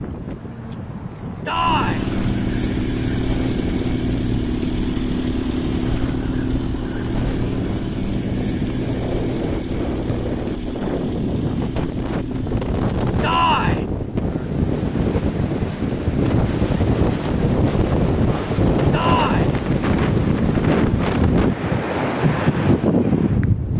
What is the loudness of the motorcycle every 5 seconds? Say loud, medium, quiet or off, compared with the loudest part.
loud, loud, medium, off, off.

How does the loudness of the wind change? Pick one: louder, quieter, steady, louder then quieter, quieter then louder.
louder.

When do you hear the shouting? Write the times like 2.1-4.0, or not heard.
1.4-2.0, 13.2-13.8, 18.9-19.6.